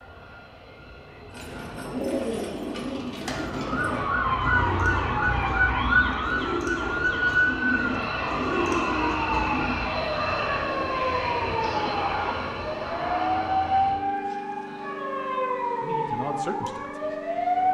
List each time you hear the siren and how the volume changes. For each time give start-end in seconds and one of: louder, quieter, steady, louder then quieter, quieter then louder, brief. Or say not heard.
3.4-17.6 quieter.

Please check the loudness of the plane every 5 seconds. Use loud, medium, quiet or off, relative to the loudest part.
quiet, loud, loud, medium.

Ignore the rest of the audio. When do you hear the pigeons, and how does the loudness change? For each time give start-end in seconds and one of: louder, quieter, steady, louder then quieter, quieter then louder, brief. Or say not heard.
1.3-9.8 quieter then louder.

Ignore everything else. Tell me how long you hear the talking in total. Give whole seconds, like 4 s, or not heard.
2 s.